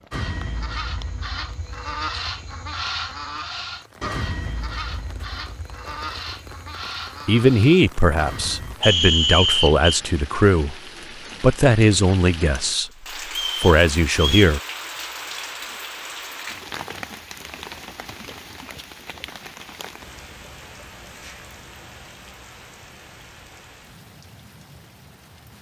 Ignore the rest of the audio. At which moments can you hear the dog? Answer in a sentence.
You can't hear the dog here.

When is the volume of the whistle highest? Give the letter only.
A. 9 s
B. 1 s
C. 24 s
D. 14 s
A.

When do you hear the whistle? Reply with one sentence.
The whistle can be heard from 8.8 to 9.9 s and from 13.3 to 14.6 s.